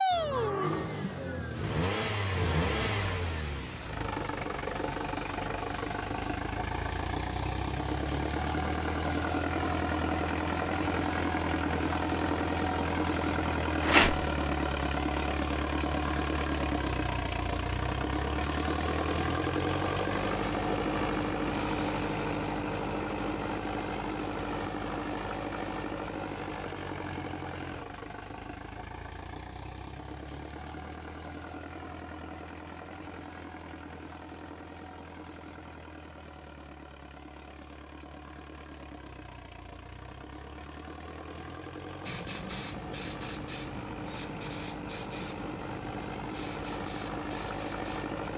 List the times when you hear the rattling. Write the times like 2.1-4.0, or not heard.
13.8-14.2.